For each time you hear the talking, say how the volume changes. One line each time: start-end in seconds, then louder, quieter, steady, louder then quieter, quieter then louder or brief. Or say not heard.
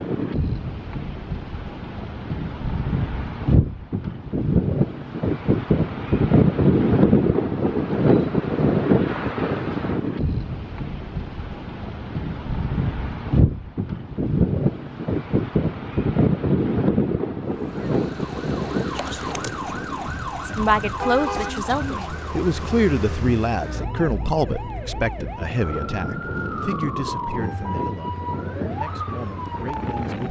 20.4-30.2 quieter.